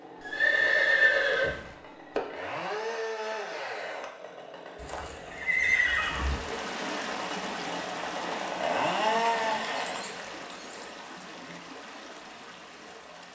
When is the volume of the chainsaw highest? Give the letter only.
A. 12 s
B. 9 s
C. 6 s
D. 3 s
B.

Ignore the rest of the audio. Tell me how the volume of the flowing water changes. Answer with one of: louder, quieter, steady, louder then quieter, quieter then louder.
quieter.